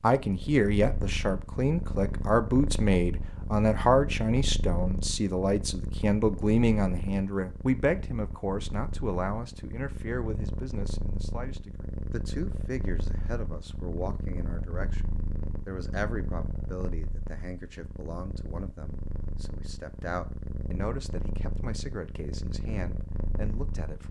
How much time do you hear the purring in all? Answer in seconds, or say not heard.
24 s.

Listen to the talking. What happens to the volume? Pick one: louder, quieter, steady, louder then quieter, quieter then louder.
quieter.